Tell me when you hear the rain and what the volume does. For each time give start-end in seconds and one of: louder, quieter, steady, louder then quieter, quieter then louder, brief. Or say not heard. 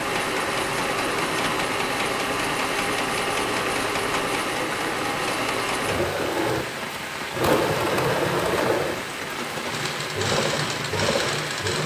0.0-11.8 steady.